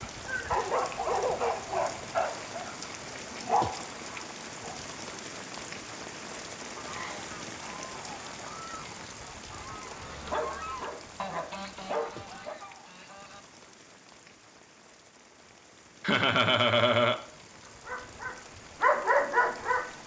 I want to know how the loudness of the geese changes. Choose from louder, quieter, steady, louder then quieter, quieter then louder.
louder then quieter.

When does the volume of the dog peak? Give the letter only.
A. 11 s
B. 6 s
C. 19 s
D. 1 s
C.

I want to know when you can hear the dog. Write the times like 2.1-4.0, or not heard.
0.0-4.8, 9.8-12.6, 17.6-19.9.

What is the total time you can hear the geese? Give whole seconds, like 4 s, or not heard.
7 s.